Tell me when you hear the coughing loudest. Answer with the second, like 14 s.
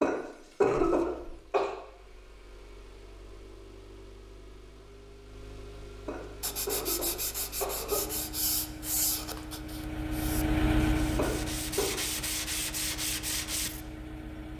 1 s.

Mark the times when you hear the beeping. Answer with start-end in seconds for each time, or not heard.
not heard.